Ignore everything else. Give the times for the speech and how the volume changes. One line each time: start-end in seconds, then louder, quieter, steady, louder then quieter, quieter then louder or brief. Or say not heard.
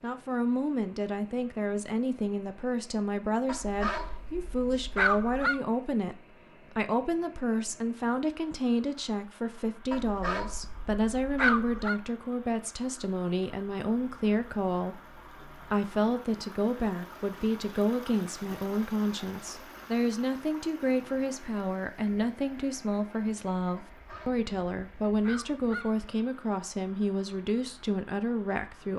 0.0-6.2 steady
6.8-28.9 steady.